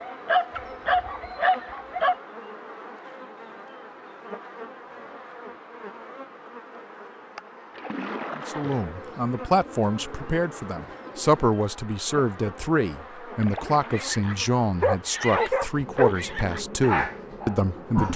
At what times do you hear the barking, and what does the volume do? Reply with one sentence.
You can hear the barking briefly from 0.0 to 2.1 s; and from 13.9 to 18.1 s, getting quieter.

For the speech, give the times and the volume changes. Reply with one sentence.
You can hear the speech from 8.3 to 18.1 s, at a steady volume.